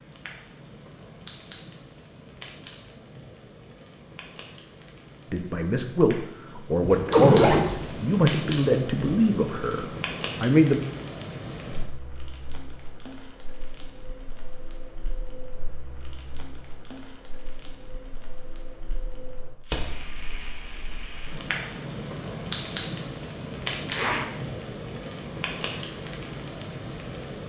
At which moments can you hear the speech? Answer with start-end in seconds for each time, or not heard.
5.3-10.8.